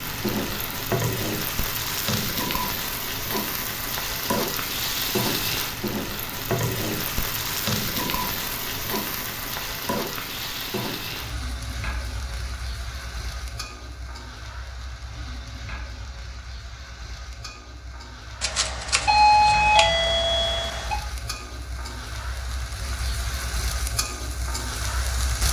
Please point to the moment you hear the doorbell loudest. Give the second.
19 s.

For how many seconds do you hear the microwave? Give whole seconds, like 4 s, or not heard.
not heard.